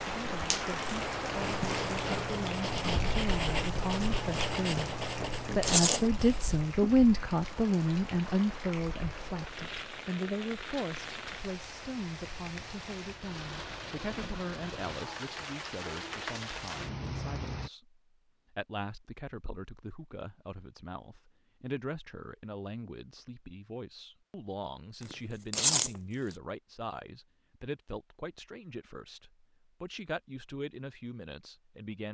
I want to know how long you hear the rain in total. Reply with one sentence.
The rain can be heard for 18 seconds in total.